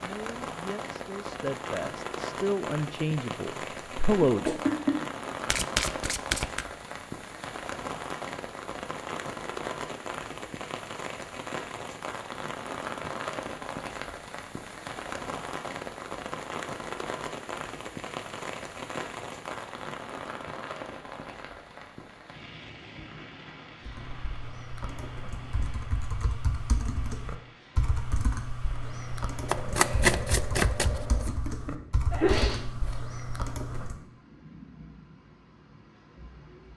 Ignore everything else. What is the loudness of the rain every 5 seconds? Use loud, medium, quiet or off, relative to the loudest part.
loud, loud, loud, loud, medium, quiet, quiet, quiet.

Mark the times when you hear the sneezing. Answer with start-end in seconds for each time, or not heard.
4.5-5.0, 31.0-33.0.